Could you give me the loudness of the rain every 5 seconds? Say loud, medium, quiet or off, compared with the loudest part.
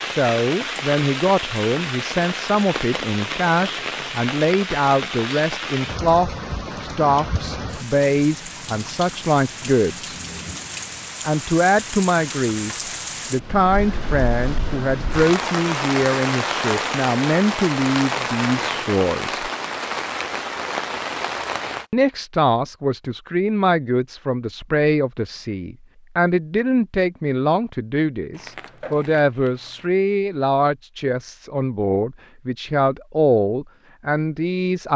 loud, medium, medium, loud, loud, off, off.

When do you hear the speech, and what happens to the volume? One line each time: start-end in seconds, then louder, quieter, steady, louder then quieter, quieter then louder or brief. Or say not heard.
0.0-10.2 steady
11.2-19.5 steady
21.9-34.9 steady.